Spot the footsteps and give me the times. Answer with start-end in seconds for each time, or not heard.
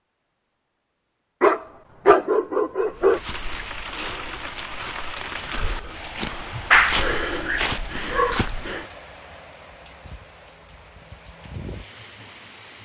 2.8-8.8.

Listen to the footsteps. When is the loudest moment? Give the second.
7 s.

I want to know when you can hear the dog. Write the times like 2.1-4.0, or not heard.
1.4-3.2, 6.5-8.4.